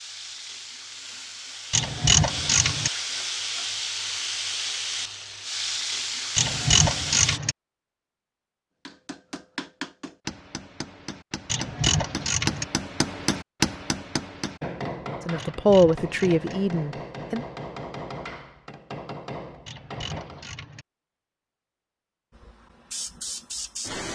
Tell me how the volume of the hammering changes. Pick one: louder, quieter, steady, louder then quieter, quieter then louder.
louder then quieter.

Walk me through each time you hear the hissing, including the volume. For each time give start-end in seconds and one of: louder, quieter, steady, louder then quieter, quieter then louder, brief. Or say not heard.
0.0-7.4 louder
22.4-24.1 brief.